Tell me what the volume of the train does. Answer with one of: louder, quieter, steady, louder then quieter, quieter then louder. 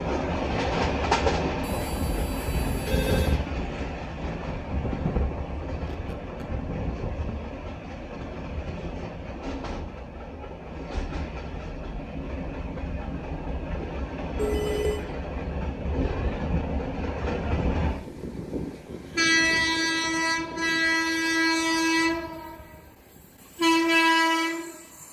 quieter then louder.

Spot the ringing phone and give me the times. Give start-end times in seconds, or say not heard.
1.6-3.4, 14.3-15.1.